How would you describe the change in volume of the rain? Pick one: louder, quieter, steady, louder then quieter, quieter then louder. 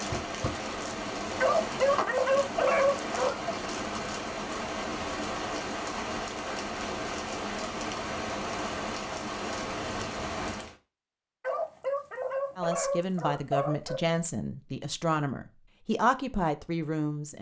steady.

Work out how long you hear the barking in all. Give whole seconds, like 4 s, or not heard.
5 s.